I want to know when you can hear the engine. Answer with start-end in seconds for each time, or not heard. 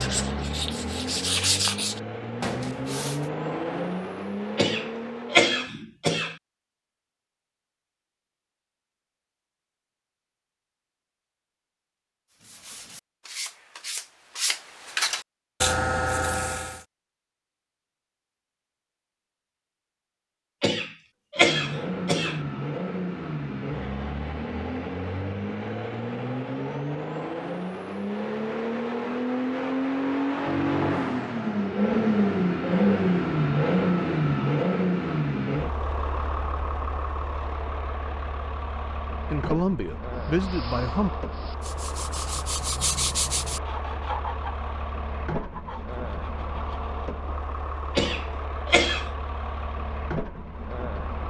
0.0-5.7, 21.4-51.2.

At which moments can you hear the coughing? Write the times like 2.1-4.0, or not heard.
4.5-6.3, 20.6-22.4, 48.0-49.1.